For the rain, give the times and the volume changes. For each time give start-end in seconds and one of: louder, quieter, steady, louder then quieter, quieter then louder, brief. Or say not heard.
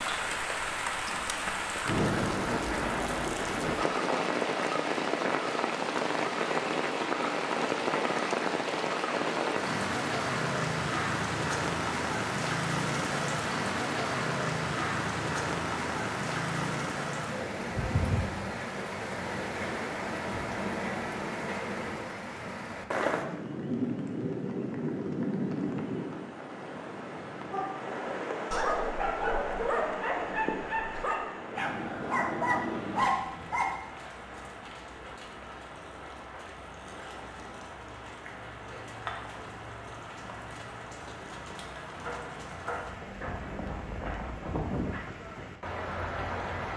0.0-46.7 quieter.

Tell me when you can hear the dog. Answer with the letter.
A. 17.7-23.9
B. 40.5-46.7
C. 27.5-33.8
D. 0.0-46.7
C.